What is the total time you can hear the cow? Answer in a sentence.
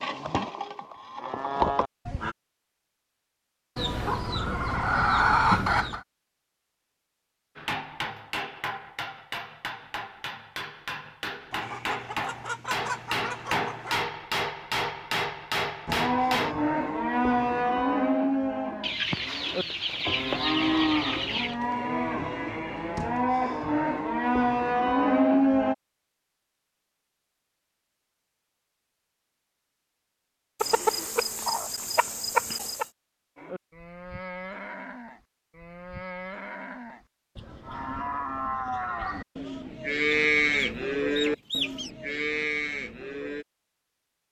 You can hear the cow for 22 seconds altogether.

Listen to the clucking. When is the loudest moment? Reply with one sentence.
The loudest moment of the clucking is at 5 seconds.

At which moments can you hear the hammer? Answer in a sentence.
You can hear the hammer from 7.5 to 16.6 s.